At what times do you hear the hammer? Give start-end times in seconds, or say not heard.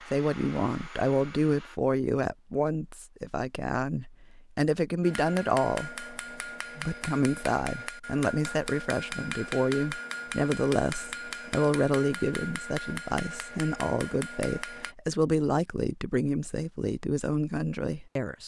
5.0-14.9.